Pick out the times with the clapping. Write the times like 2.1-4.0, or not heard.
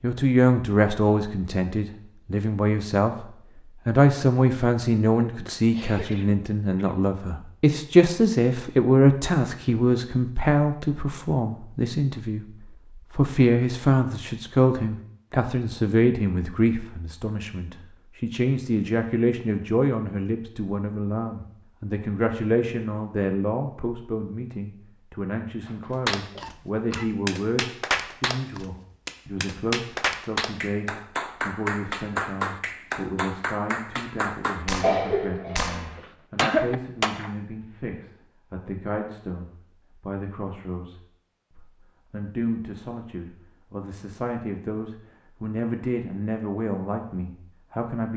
26.1-37.4.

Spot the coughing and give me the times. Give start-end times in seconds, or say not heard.
5.7-7.0, 25.6-27.1, 34.8-36.8.